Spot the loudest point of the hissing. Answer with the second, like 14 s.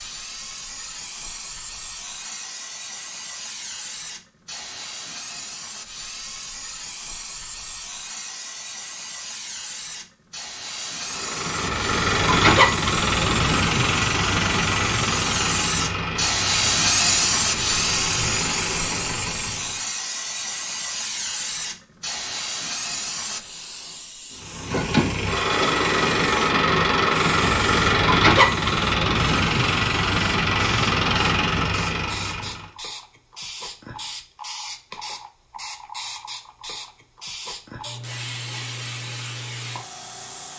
17 s.